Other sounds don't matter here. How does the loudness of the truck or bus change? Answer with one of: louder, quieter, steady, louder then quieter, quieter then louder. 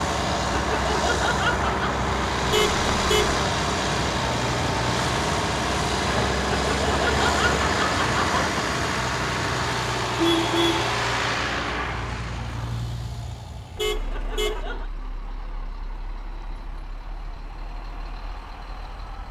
quieter.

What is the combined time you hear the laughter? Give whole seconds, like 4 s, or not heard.
4 s.